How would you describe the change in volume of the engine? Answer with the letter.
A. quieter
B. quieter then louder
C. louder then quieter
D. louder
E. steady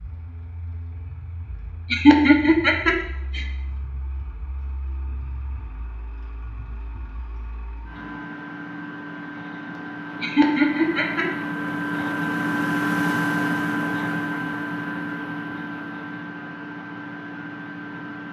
C.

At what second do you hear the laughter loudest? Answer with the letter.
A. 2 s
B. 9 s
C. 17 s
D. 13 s
A.